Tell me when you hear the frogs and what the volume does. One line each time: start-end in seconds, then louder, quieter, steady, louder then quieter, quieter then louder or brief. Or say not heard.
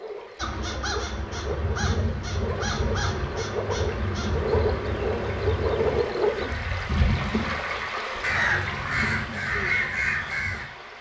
0.0-6.5 louder.